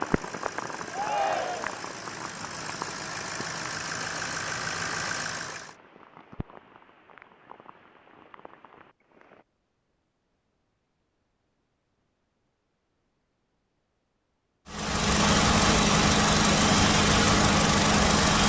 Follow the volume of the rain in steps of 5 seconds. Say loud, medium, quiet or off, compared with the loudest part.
loud, quiet, off, off.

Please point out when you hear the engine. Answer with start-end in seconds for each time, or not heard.
0.0-5.8, 14.7-18.4.